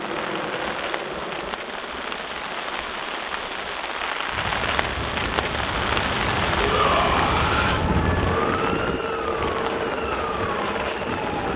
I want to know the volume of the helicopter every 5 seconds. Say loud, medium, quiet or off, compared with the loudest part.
medium, loud, loud.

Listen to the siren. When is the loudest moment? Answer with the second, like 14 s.
8 s.